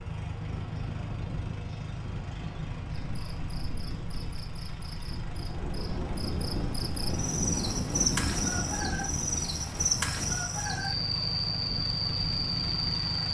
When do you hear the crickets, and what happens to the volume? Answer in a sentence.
You can hear the crickets from 3.1 to 13.2 s, getting louder.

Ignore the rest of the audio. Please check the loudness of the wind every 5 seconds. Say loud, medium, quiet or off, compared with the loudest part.
medium, loud, medium.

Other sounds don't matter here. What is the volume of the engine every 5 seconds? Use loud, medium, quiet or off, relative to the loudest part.
loud, medium, loud.